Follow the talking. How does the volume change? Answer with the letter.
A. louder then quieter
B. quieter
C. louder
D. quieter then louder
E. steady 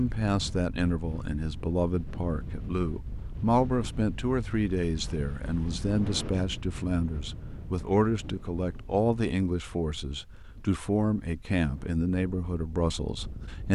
E.